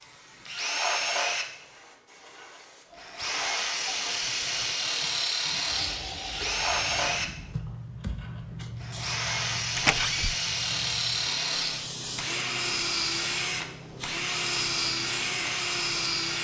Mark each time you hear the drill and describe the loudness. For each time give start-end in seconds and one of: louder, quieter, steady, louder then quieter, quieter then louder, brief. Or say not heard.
0.0-16.3 steady.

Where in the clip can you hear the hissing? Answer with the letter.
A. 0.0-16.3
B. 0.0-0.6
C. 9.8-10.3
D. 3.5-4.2
A.